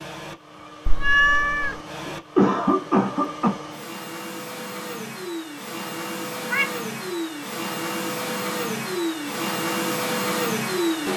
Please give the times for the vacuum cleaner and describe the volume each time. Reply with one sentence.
You can hear the vacuum cleaner from 0.0 to 11.1 s, getting louder.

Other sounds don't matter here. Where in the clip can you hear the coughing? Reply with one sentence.
The coughing can be heard from 2.0 to 3.5 s.